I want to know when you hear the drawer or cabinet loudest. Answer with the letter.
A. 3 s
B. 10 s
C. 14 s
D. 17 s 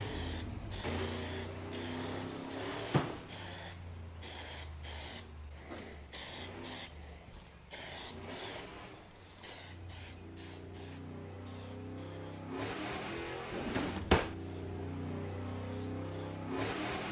C.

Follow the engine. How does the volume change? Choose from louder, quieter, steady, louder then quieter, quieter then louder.
quieter then louder.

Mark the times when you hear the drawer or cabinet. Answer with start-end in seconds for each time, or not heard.
1.9-3.2, 13.5-14.3.